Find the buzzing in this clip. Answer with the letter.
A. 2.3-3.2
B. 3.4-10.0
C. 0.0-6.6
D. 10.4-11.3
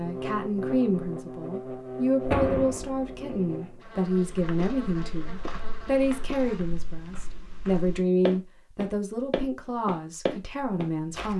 C.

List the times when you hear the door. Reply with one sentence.
You can hear the door from 2.3 to 3.2 s.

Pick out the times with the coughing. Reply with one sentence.
You can't hear the coughing here.